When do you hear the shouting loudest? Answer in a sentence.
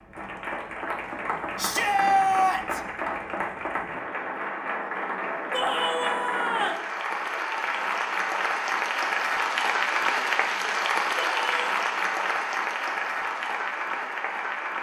The loudest moment of the shouting is at 2 seconds.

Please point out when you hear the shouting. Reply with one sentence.
You can hear the shouting from 1.6 to 2.8 s, from 5.5 to 6.8 s and from 11.2 to 11.6 s.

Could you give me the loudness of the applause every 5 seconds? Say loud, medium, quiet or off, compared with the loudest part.
medium, loud, loud.